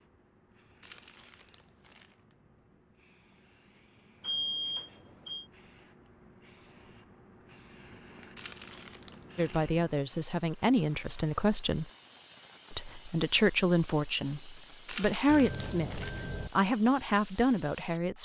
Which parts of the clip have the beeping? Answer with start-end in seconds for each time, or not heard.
4.2-5.5, 15.2-16.5.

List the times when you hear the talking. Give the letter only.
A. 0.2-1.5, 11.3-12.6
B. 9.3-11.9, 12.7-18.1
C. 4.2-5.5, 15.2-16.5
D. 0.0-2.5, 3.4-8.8
B.